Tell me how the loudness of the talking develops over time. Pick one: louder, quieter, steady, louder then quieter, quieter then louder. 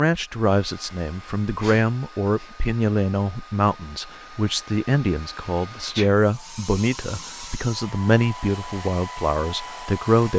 steady.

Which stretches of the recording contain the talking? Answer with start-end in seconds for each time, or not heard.
0.0-10.3.